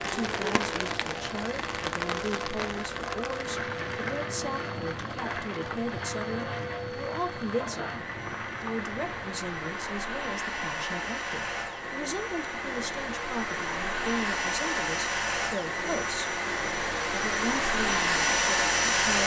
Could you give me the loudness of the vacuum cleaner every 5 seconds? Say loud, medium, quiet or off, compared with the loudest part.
quiet, medium, medium, loud.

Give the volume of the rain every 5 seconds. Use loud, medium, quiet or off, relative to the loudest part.
loud, medium, off, off.